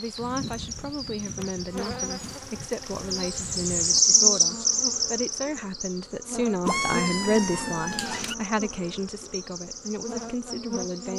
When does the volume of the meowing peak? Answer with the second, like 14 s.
7 s.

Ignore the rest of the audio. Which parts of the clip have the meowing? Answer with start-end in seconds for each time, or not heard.
6.6-8.3.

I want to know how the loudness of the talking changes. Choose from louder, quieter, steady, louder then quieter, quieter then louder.
louder then quieter.